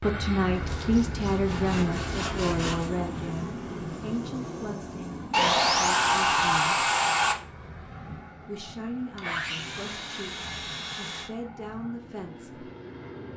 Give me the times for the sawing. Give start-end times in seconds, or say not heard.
0.5-2.9, 5.3-7.3, 9.2-11.3.